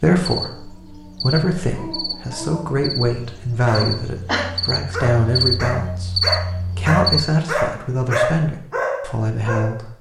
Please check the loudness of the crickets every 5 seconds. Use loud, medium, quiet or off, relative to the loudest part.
medium, loud.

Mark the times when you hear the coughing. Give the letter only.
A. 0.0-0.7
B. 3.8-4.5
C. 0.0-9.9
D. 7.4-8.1
B.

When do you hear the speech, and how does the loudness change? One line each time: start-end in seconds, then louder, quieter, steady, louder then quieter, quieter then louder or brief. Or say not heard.
0.0-9.9 steady.